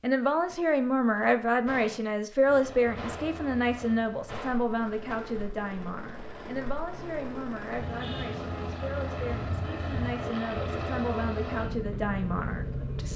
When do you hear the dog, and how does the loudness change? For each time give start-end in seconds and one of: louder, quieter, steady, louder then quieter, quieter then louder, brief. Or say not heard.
not heard.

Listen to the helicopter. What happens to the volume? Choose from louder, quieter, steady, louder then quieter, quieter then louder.
louder.